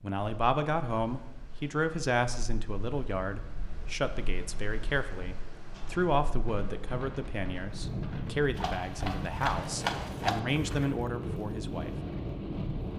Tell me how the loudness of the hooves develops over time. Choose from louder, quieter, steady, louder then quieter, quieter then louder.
louder then quieter.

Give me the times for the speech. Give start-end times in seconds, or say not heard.
0.0-11.9.